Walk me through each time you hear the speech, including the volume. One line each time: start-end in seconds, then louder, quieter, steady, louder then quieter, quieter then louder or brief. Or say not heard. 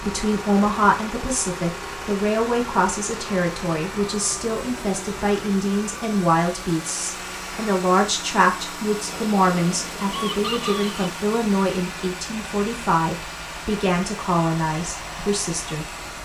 0.0-15.8 steady.